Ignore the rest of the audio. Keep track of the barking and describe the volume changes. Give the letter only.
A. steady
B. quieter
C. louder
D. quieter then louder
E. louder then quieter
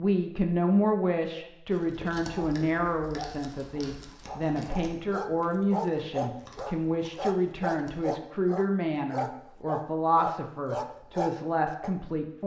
C.